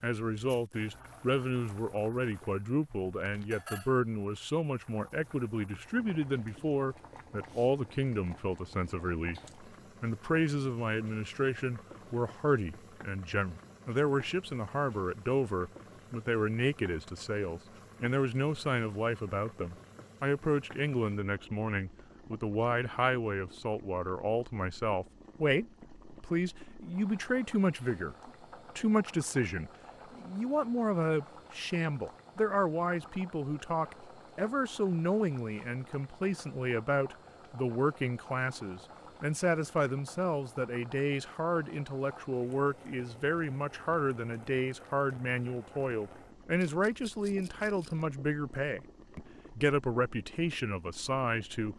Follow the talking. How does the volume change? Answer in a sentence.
The volume of the talking stays about the same.